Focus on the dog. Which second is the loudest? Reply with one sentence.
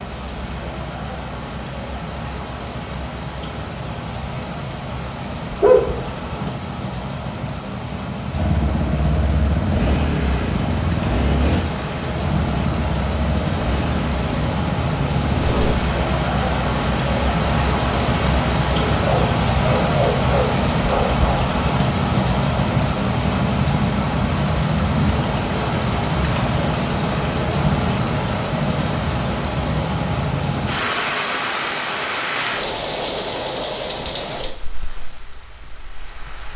The volume of the dog peaks at 6 seconds.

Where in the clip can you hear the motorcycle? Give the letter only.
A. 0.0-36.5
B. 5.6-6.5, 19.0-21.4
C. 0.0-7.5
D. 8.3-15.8
D.